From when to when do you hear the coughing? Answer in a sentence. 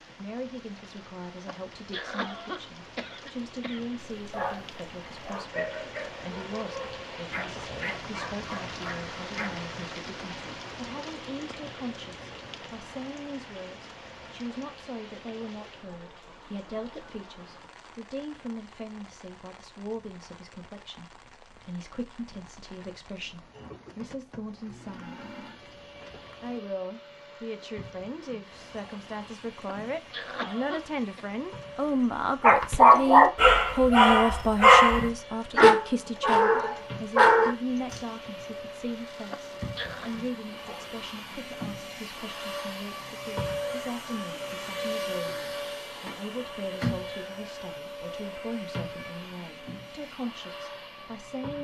You can hear the coughing from 1.4 to 3.8 s, from 29.6 to 31.2 s and from 39.3 to 40.1 s.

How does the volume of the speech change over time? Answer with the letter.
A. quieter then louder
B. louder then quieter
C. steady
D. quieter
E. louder
B.